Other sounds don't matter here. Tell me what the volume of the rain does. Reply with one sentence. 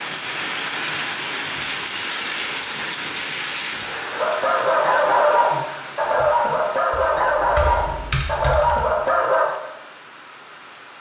The volume of the rain goes down.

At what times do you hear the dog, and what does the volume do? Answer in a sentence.
The dog can be heard from 4.1 to 9.6 s, at a steady volume.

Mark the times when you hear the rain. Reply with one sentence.
You can hear the rain from 0.0 to 10.9 s.